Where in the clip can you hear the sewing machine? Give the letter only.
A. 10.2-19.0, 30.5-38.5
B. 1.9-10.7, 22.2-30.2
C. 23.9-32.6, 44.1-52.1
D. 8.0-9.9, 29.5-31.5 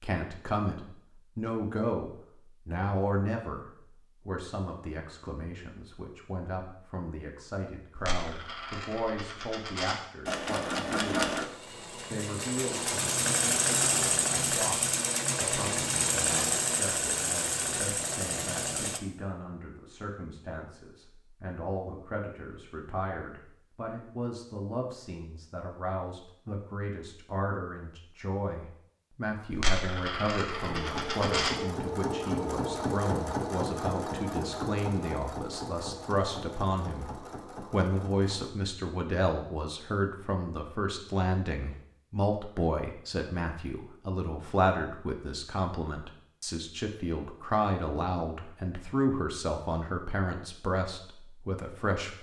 A.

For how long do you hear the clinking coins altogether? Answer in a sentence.
The clinking coins can be heard for 4 seconds in total.